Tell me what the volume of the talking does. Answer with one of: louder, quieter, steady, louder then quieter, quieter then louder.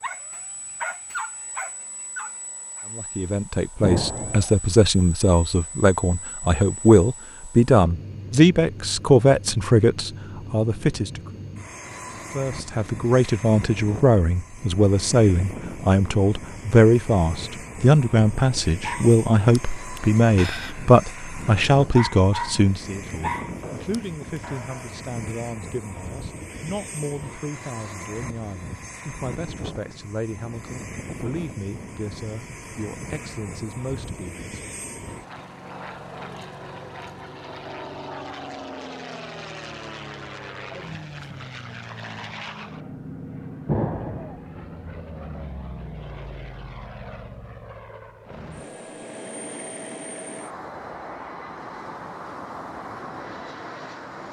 quieter.